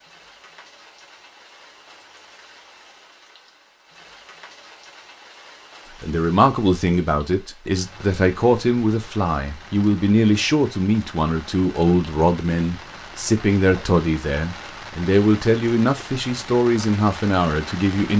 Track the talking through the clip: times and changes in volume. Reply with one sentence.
The talking can be heard from 6.0 to 18.1 s, at a steady volume.